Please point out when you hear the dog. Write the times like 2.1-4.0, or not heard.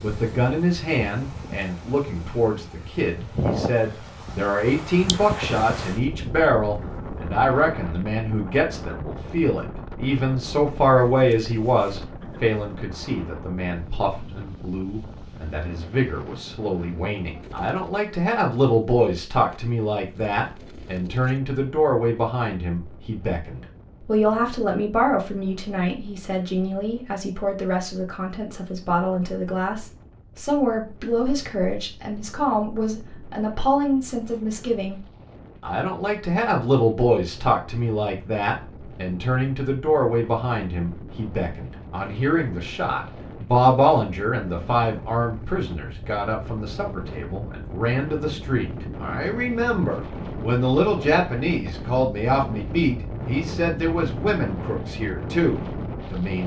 not heard.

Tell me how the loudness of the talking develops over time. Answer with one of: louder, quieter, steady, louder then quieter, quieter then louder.
steady.